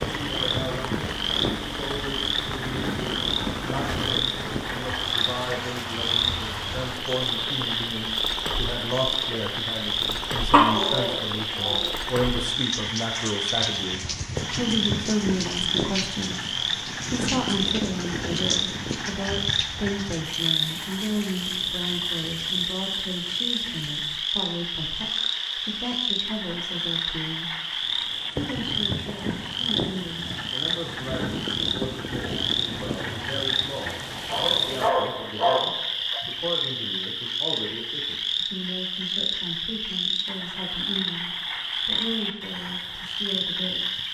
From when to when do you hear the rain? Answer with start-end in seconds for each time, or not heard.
0.0-34.9.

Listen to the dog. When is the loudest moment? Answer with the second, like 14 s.
11 s.